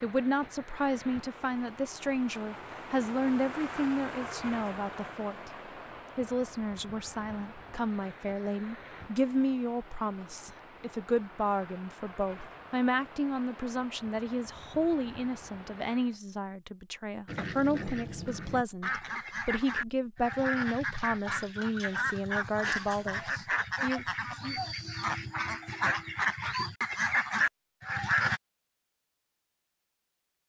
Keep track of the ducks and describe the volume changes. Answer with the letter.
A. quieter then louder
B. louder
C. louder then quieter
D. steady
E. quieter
B.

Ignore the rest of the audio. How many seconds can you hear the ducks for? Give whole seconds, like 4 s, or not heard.
11 s.